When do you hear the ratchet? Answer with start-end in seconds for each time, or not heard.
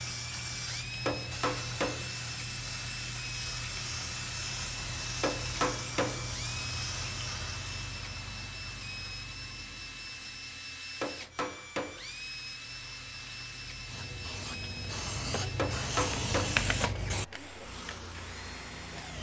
not heard.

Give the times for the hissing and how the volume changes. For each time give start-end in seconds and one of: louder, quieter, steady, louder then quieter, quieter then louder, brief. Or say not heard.
0.0-19.1 quieter then louder.